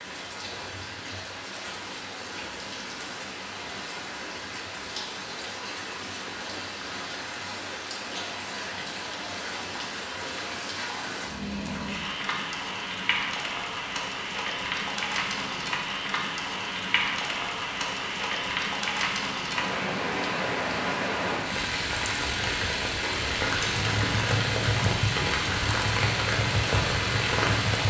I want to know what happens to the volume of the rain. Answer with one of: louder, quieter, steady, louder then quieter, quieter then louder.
louder.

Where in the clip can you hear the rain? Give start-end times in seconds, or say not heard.
0.0-27.8.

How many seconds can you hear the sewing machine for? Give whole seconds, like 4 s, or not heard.
5 s.